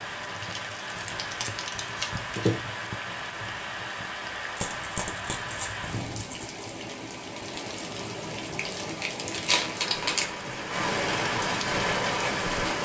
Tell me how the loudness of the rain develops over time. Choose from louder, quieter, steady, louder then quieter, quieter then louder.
louder.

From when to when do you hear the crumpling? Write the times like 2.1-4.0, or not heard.
0.4-2.6, 4.5-6.7, 8.6-10.3.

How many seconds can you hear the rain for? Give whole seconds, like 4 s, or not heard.
13 s.